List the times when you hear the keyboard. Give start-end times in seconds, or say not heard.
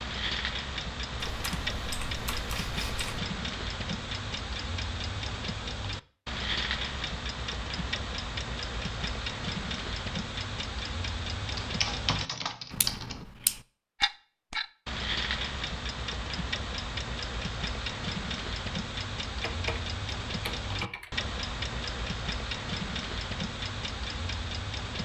1.2-3.2, 11.6-13.2, 19.4-21.1.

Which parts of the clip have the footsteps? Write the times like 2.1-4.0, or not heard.
not heard.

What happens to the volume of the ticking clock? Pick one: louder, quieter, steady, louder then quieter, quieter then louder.
steady.